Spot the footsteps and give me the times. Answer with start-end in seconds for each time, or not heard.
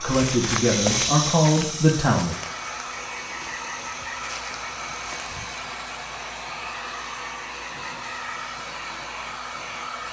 0.0-5.7.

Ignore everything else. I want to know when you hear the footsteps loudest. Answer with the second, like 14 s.
1 s.